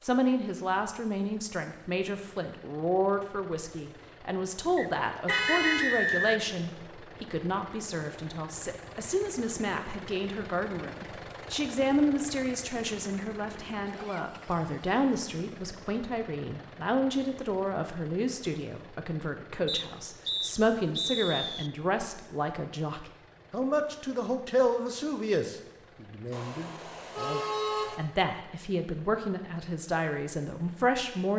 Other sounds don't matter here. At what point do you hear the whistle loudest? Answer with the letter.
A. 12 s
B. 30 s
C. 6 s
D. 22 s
C.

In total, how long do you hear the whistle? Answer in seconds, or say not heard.
4 s.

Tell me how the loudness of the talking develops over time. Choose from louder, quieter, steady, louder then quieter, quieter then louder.
steady.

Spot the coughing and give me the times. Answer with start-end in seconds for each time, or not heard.
not heard.